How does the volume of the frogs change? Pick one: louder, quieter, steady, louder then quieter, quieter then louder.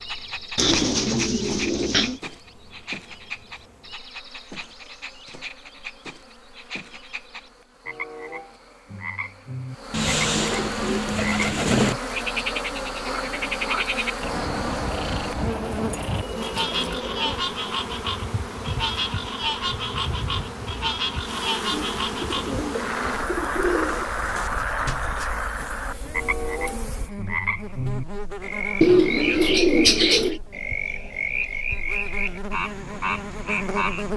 louder.